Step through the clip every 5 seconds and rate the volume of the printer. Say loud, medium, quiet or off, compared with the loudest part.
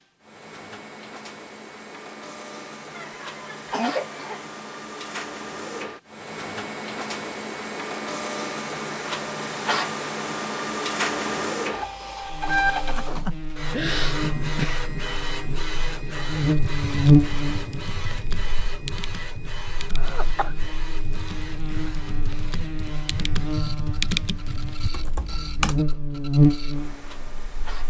medium, loud, loud, medium, quiet, quiet.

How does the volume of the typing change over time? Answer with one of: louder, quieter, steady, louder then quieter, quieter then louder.
louder.